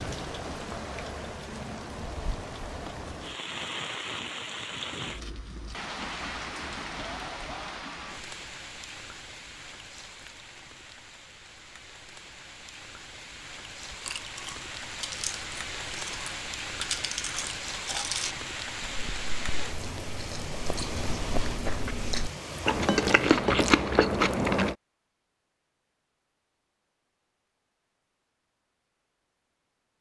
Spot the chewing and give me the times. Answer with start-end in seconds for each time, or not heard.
13.9-24.8.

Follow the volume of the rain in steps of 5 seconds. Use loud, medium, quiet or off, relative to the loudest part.
loud, loud, medium, loud, loud, off.